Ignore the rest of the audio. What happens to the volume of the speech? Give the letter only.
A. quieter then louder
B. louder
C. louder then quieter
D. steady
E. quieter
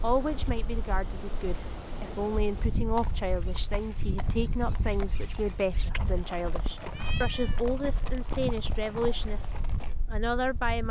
D.